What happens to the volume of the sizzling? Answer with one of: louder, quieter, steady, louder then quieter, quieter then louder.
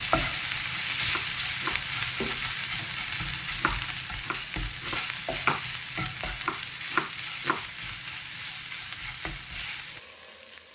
quieter.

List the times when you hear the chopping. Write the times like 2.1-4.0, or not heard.
1.1-5.7, 6.4-7.7.